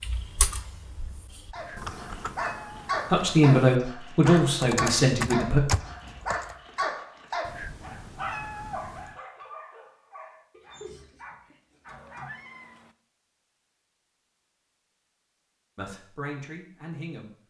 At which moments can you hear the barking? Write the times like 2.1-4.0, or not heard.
1.5-12.4.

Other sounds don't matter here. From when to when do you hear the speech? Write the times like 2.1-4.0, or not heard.
3.1-5.6, 15.8-17.3.